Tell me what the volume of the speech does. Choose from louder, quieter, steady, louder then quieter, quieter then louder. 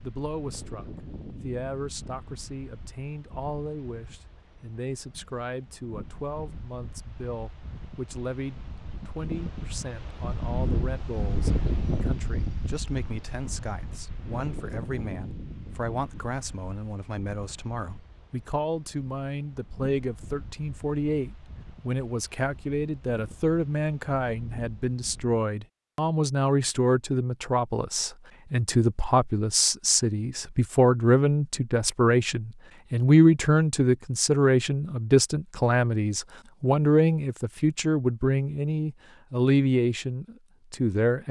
louder.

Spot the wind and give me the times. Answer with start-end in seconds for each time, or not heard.
0.0-25.4.